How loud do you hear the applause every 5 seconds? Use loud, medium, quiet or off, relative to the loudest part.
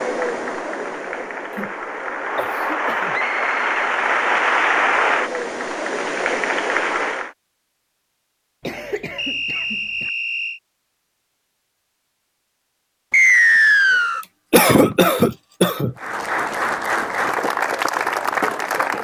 loud, loud, off, loud.